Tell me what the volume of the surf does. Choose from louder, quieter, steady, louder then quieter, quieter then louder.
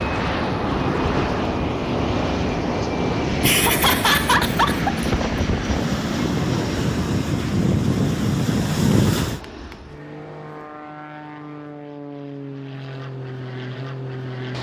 louder.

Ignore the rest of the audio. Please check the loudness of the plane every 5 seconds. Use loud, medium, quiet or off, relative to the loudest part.
loud, medium, medium.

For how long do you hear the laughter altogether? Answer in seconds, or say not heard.
2 s.